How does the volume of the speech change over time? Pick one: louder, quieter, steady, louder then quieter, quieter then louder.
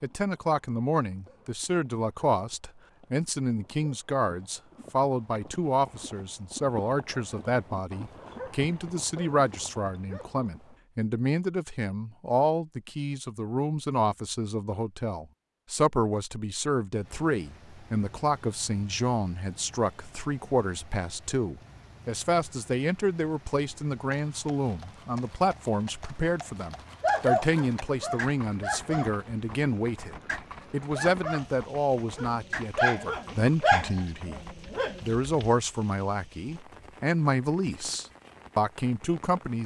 steady.